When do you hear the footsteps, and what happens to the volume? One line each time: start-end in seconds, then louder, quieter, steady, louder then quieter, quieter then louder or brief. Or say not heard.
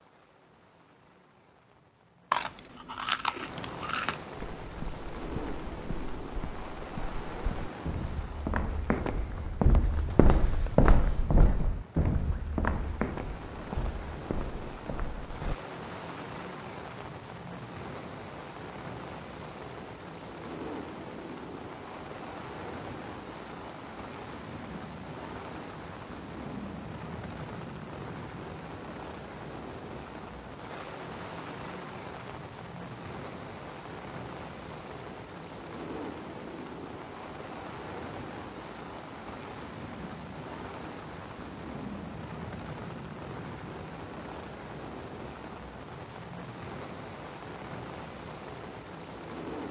4.3-15.6 louder then quieter.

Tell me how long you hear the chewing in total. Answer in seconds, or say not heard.
2 s.